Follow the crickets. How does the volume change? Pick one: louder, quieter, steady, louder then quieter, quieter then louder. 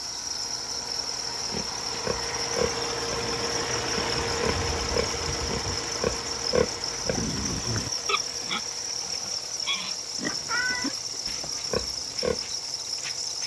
steady.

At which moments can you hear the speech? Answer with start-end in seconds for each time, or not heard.
not heard.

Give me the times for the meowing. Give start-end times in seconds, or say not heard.
10.4-11.6.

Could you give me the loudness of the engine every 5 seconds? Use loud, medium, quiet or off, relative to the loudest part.
loud, medium, quiet.